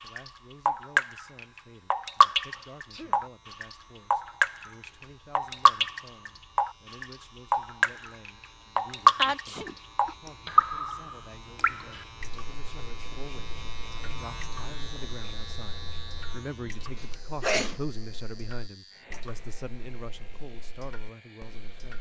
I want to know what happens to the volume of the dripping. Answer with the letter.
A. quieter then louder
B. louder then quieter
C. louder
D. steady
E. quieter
E.